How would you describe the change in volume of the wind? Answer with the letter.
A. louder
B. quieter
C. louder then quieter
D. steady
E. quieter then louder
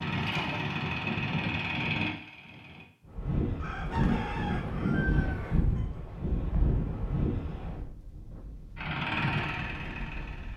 B.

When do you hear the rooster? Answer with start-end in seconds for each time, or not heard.
3.5-6.0.